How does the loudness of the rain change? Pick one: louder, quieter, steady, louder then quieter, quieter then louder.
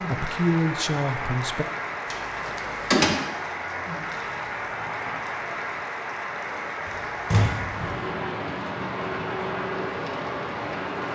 steady.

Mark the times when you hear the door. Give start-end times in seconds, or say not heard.
2.1-3.1, 6.8-8.0.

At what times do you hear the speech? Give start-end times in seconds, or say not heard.
0.1-1.6.